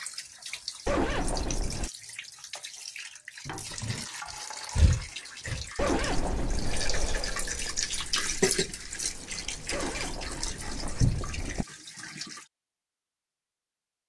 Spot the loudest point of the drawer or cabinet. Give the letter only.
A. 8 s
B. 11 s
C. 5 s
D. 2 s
B.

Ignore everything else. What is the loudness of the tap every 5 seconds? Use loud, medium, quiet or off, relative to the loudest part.
medium, loud, medium.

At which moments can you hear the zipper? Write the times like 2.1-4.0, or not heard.
0.8-1.9, 5.8-6.9, 9.7-11.7.